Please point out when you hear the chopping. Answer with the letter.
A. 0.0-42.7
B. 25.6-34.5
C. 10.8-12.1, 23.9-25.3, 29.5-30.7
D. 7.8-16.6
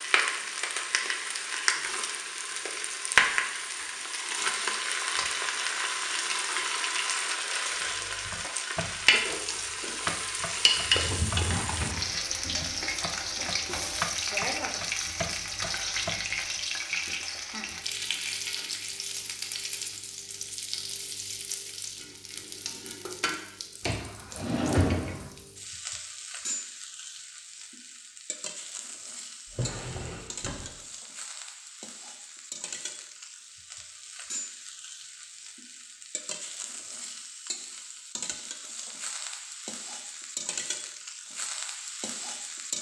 D.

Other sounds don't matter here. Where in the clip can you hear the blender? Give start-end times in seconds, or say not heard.
not heard.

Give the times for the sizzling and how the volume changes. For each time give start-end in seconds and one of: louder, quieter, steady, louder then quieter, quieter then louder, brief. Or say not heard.
0.0-42.7 quieter.